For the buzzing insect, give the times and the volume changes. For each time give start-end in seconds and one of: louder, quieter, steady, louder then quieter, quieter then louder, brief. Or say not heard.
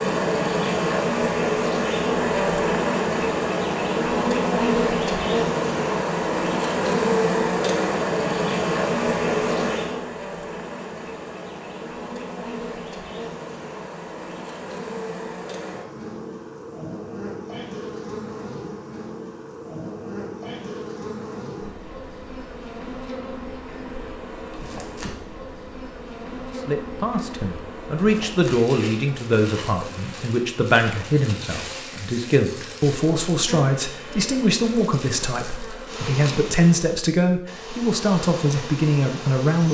0.0-39.6 quieter.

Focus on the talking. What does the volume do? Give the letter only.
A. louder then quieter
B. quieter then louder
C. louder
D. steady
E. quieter
D.